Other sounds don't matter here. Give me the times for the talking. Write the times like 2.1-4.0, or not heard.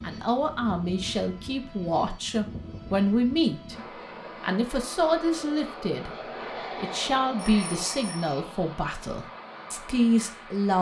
0.0-10.7.